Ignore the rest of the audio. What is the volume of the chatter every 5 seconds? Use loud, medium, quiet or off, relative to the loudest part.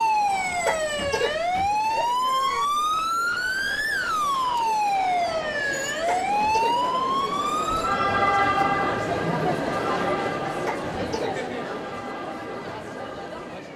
quiet, loud, loud.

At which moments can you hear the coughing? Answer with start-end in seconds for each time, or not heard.
0.7-2.6, 6.0-6.8, 10.7-11.3.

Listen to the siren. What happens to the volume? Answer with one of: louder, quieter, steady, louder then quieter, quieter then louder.
quieter.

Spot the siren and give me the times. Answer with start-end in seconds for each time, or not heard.
0.0-13.7.